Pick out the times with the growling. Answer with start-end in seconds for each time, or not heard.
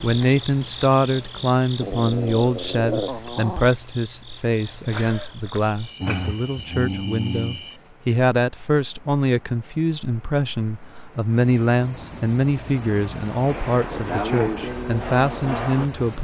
1.8-3.7, 6.0-7.7, 13.4-14.6.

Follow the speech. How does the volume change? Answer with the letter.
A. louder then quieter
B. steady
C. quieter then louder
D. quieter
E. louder
B.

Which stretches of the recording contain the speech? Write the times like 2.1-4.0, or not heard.
0.0-16.2.